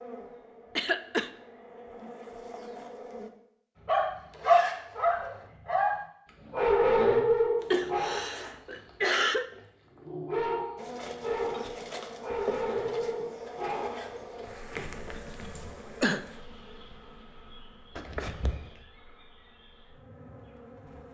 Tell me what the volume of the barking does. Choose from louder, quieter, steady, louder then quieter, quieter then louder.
quieter then louder.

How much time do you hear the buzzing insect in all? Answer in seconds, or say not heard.
14 s.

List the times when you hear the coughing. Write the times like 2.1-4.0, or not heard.
0.8-1.3, 7.7-9.4, 15.6-16.2.